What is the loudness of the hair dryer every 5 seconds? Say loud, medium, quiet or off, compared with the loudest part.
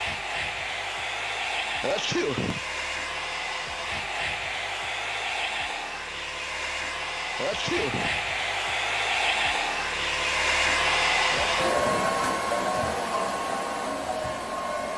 medium, loud, loud.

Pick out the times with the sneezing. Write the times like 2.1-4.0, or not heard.
1.8-2.6, 7.3-8.2, 11.3-12.1.